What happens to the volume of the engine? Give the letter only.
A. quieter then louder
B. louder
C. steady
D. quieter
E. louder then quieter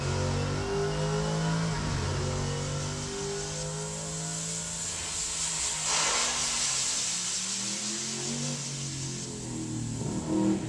A.